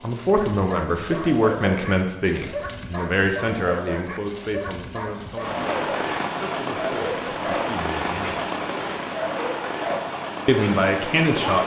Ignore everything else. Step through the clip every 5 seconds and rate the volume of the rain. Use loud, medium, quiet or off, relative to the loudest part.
off, loud, loud.